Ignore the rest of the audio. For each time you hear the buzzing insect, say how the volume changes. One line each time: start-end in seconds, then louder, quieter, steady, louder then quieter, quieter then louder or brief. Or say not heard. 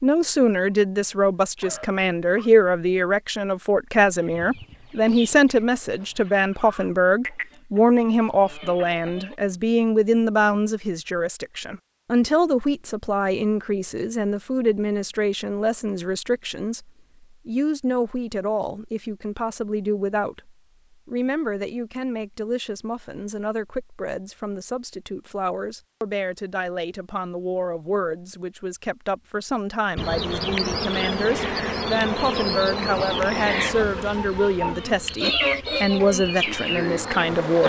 29.9-37.6 quieter then louder.